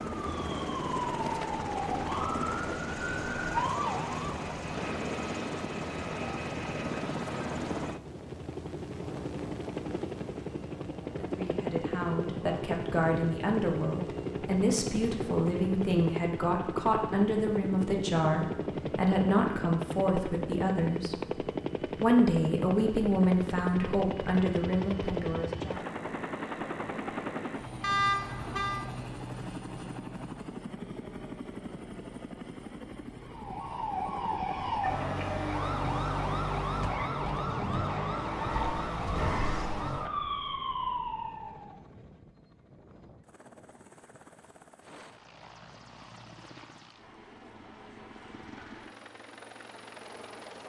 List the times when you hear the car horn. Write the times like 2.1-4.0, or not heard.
27.8-28.8.